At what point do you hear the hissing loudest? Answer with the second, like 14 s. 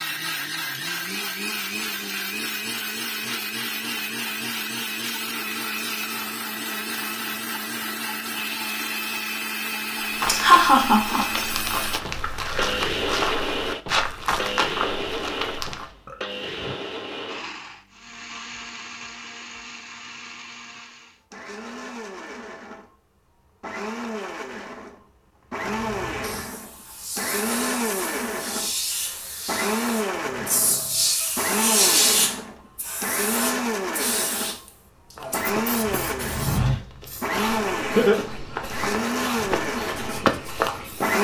32 s.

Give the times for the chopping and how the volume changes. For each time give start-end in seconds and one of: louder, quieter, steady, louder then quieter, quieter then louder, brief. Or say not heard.
not heard.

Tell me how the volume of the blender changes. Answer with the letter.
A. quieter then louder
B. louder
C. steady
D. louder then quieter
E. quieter
A.